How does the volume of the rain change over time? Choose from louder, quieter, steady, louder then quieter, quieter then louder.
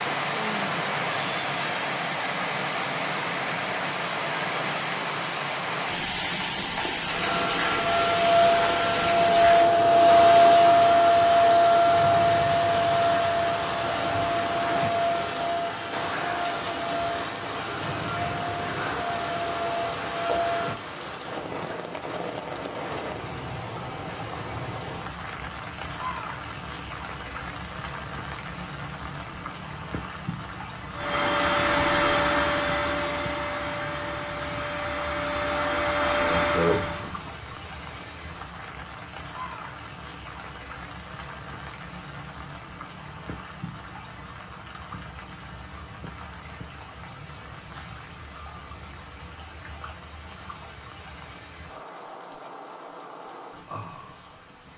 quieter.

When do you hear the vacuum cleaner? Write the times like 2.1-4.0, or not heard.
7.0-20.9, 30.9-37.5.